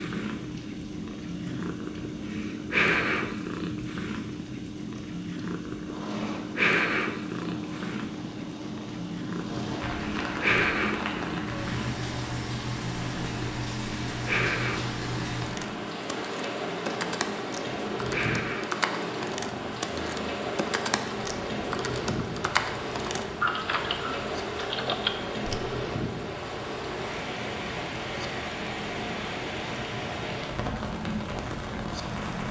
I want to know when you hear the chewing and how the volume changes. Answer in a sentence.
The chewing can't be heard in this clip.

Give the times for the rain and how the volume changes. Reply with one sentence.
The rain can be heard from 0.0 to 32.4 s, getting louder.